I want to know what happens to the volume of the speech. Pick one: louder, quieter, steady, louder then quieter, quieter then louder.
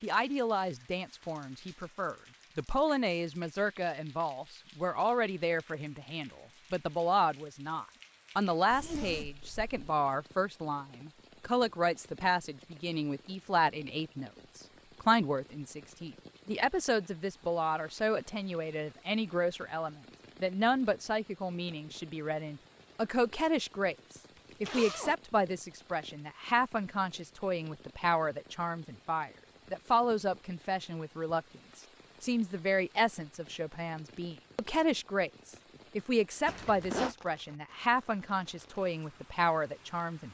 steady.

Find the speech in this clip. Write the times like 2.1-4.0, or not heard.
0.0-40.2.